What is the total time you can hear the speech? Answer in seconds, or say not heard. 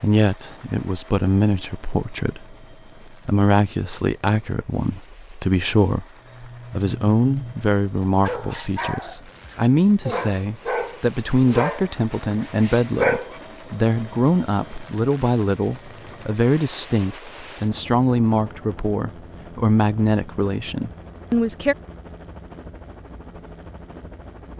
21 s.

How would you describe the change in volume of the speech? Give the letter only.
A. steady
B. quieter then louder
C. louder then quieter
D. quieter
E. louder
A.